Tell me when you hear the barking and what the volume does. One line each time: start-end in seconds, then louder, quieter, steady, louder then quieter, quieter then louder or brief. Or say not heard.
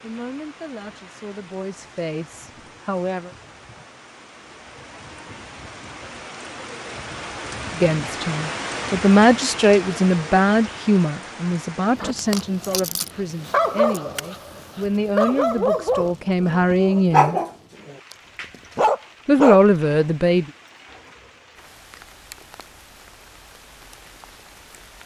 11.9-18.1 louder
18.8-19.6 brief.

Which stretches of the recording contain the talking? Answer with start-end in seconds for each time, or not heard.
0.0-3.4, 7.8-17.4, 19.2-20.5.